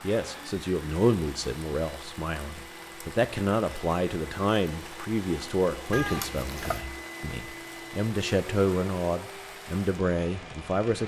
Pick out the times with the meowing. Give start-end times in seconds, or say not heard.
5.9-6.8.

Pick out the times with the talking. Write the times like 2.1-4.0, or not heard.
0.0-11.0.